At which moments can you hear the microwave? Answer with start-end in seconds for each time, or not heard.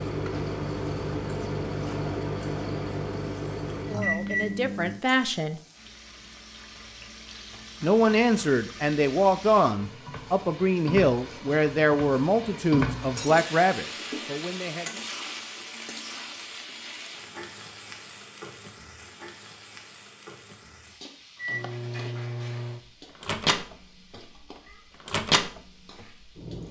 0.0-5.0, 21.4-26.6.